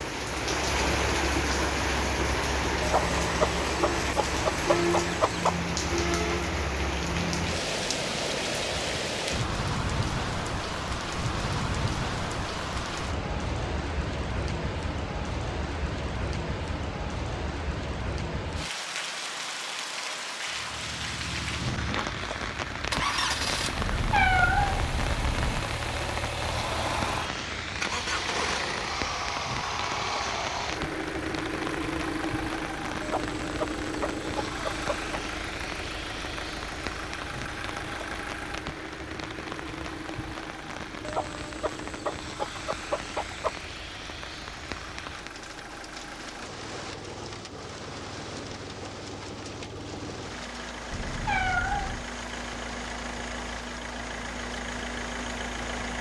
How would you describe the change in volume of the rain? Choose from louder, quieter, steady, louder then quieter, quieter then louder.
quieter.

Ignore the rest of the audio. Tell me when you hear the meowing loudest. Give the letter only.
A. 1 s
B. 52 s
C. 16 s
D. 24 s
D.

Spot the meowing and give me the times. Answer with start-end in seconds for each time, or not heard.
23.8-25.6, 50.9-52.0.